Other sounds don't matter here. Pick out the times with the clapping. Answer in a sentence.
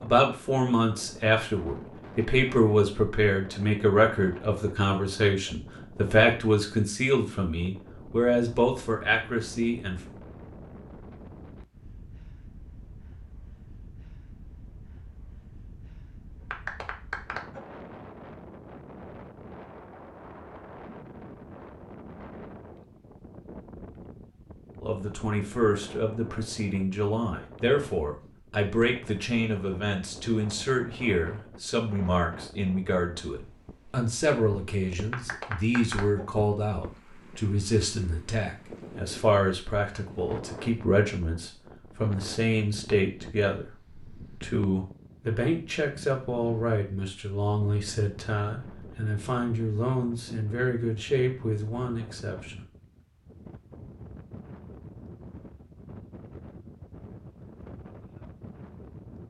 You can hear the clapping from 16.4 to 17.6 s and from 35.1 to 36.2 s.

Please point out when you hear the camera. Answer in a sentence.
You can't hear the camera here.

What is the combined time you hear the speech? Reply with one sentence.
You can hear the speech for 38 seconds altogether.